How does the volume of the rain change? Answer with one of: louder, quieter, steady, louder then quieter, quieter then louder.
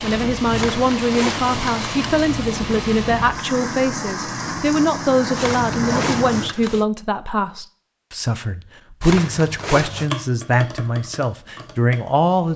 steady.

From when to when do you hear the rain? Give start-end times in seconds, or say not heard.
0.0-6.5.